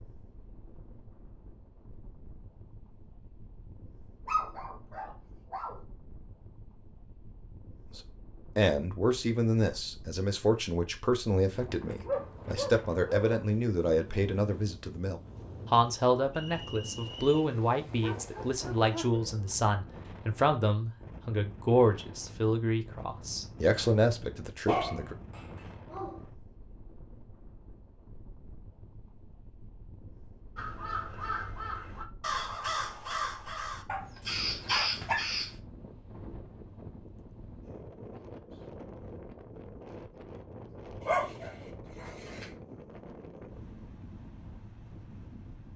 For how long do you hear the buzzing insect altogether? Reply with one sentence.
The buzzing insect can't be heard in this clip.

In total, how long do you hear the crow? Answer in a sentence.
You can hear the crow for 5 seconds altogether.